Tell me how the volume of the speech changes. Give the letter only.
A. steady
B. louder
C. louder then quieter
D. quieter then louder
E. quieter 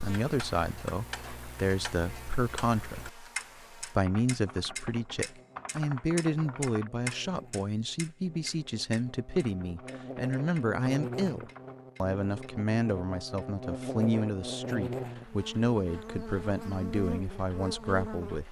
A.